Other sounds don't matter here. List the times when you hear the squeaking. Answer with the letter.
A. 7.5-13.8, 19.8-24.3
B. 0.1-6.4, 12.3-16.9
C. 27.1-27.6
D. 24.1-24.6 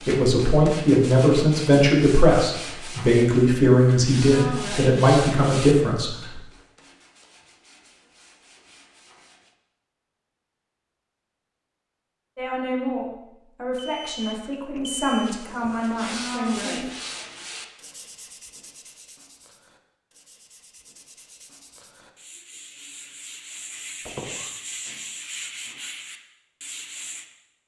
D.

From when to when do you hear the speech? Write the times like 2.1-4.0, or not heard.
0.1-6.4, 12.3-16.9.